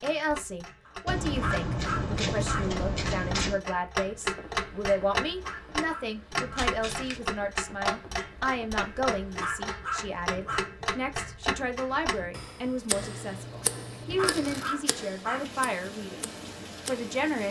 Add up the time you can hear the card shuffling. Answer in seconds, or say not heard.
5 s.